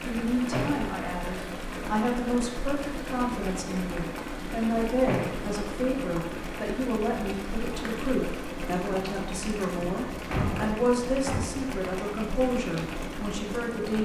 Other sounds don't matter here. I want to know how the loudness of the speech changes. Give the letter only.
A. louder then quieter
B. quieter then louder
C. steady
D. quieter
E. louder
C.